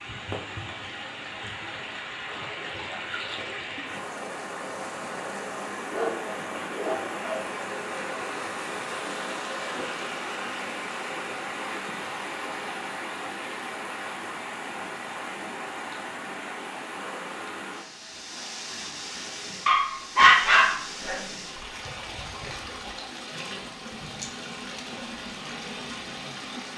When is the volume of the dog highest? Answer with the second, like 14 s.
20 s.